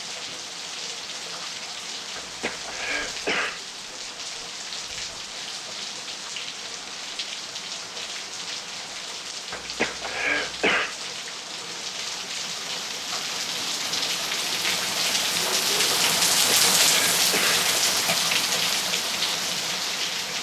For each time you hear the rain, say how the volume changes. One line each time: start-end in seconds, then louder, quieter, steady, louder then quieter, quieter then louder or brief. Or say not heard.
0.0-20.3 louder.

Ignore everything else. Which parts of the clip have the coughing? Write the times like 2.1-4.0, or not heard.
2.1-3.6, 9.5-10.9, 16.3-18.2.